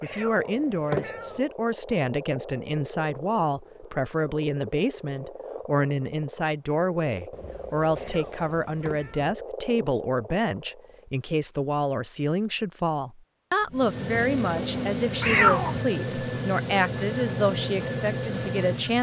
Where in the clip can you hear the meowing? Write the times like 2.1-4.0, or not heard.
0.0-1.4, 8.0-9.3, 15.2-15.8.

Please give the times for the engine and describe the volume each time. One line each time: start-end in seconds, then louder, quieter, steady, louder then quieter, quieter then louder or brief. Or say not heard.
13.6-18.9 steady.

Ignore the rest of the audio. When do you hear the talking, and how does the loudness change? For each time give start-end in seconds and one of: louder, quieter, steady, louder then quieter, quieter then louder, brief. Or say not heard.
0.0-18.9 steady.